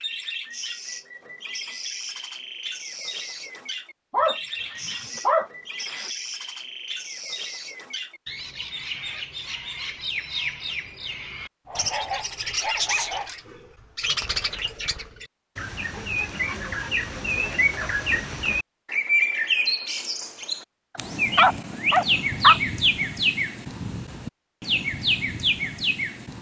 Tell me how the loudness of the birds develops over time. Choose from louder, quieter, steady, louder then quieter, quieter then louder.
louder.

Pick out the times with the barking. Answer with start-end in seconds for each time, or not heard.
4.1-6.1, 11.7-13.3, 20.9-22.6.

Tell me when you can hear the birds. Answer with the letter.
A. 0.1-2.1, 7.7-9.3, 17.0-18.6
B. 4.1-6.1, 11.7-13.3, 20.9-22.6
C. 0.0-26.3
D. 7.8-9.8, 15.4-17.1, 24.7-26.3
C.